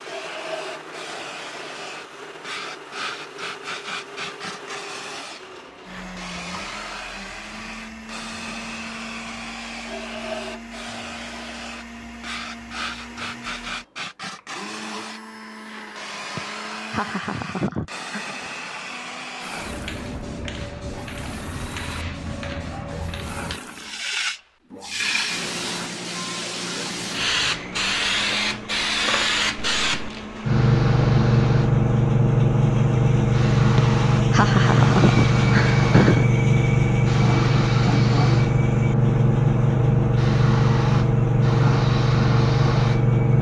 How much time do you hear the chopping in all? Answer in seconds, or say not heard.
not heard.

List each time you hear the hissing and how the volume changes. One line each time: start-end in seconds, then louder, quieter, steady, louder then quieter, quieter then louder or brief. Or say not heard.
0.0-43.3 louder.